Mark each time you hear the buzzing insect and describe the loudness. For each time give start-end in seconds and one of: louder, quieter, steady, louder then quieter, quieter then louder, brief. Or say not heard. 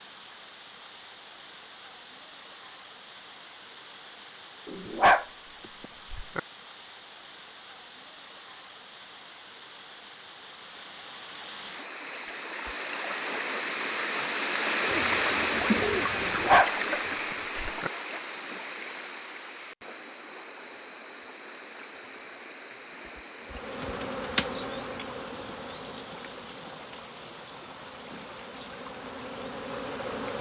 23.4-30.3 quieter then louder.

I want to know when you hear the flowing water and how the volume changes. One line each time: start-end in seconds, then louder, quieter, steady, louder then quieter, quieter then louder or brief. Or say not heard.
0.0-30.3 louder then quieter.